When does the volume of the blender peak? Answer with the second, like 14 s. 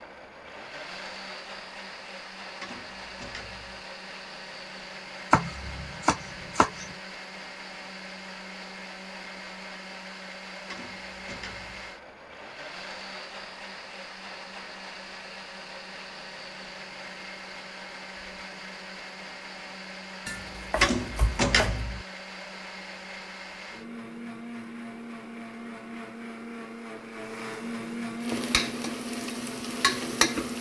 28 s.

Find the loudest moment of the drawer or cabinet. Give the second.
21 s.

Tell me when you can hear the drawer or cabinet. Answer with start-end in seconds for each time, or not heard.
2.6-3.9, 10.7-11.9, 20.8-22.1.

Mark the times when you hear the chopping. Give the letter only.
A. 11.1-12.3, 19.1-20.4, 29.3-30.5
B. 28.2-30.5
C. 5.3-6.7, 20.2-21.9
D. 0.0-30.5
C.